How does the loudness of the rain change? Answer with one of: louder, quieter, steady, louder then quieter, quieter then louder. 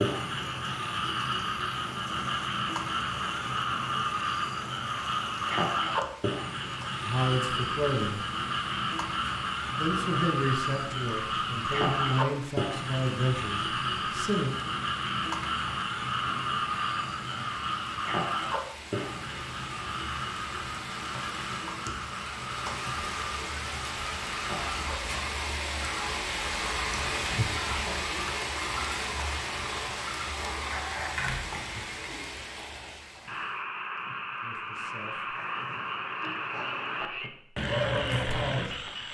louder.